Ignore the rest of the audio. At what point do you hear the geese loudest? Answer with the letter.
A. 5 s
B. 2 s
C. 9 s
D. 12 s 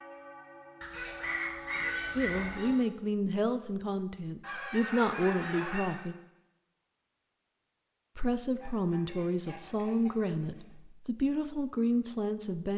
B.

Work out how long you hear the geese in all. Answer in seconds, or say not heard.
6 s.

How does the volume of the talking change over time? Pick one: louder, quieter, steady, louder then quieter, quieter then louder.
steady.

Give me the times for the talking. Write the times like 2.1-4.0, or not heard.
2.1-6.2, 8.2-12.7.